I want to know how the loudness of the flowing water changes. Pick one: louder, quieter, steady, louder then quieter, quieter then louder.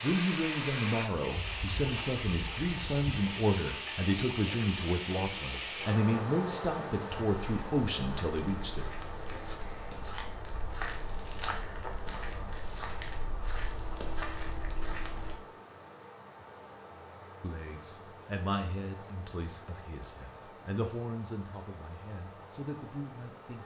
quieter.